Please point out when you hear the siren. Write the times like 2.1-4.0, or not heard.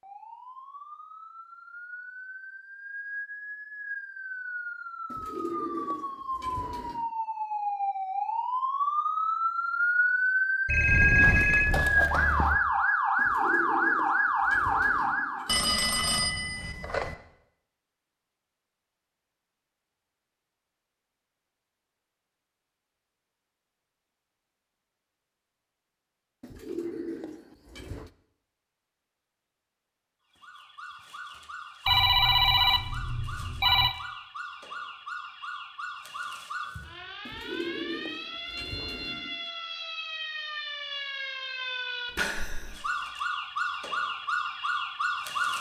0.0-15.5, 30.3-45.5.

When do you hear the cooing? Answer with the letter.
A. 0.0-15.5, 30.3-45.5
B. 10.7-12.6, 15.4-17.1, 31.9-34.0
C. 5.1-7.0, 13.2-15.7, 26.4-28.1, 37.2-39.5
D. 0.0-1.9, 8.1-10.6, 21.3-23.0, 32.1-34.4
C.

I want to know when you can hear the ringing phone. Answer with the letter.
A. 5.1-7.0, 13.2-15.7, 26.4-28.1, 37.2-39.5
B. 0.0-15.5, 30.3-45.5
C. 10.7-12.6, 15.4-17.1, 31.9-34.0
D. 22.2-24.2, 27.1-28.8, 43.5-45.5
C.